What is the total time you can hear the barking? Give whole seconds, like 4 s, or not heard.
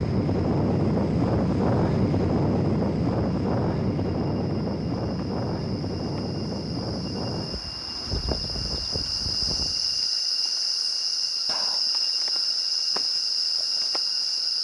not heard.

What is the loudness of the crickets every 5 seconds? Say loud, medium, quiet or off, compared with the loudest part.
quiet, medium, loud.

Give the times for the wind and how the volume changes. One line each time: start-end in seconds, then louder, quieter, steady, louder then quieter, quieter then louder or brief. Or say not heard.
0.0-10.1 quieter.